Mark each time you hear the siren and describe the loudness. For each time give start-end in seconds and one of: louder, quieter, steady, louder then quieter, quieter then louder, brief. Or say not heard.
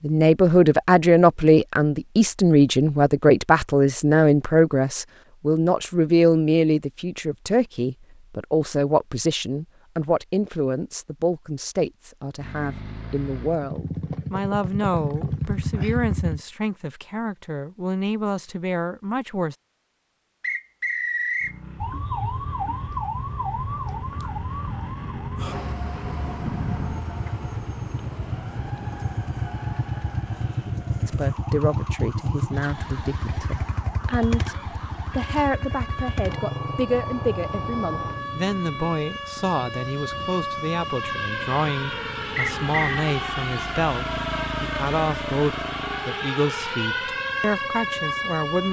21.8-48.6 quieter then louder.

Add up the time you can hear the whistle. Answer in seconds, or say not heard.
2 s.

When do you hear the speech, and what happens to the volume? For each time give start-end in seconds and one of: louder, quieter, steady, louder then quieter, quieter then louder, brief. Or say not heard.
0.0-19.6 quieter
31.1-48.6 steady.